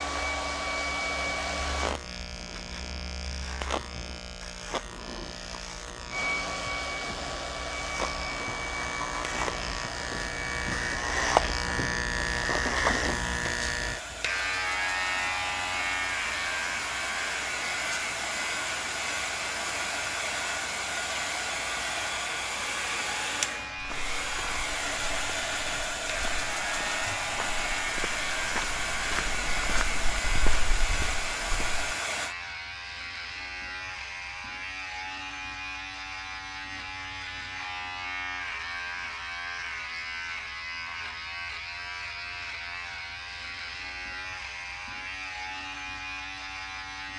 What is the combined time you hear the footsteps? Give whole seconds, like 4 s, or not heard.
8 s.